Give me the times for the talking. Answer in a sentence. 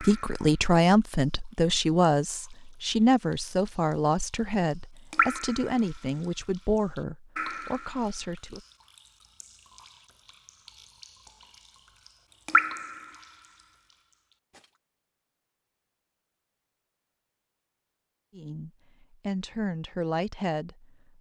The talking can be heard from 0.0 to 8.7 s and from 18.4 to 20.9 s.